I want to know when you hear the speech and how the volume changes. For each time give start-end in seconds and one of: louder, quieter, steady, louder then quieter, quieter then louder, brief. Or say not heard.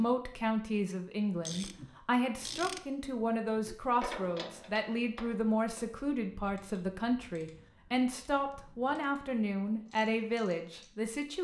0.0-11.3 steady.